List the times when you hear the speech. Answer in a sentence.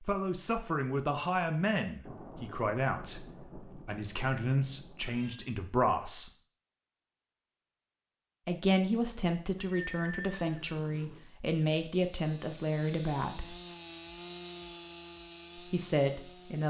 The speech can be heard from 0.0 to 6.3 s, from 8.4 to 13.6 s and from 15.6 to 16.6 s.